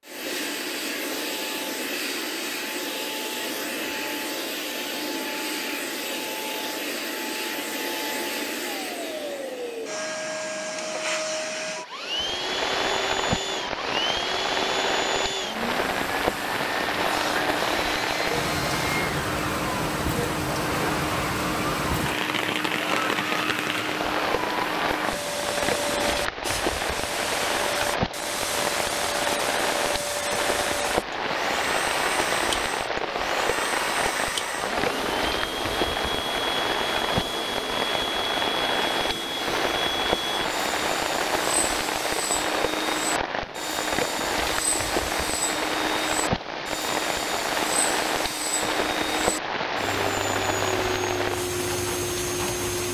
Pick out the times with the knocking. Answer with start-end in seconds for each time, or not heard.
not heard.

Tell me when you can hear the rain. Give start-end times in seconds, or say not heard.
12.1-52.9.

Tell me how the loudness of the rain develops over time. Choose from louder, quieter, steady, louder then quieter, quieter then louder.
steady.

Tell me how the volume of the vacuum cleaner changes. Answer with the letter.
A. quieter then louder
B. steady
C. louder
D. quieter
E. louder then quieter
B.